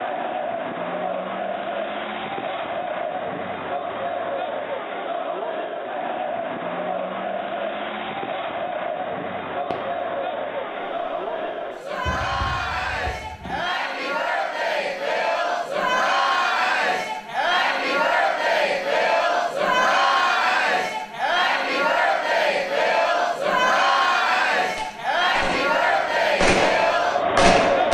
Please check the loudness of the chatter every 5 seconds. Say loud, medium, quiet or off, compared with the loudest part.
medium, medium, medium, loud, loud, loud.